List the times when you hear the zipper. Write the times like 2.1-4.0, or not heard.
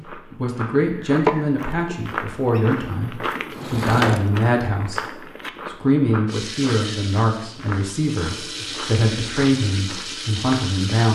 not heard.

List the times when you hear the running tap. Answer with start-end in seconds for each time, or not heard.
6.2-11.1.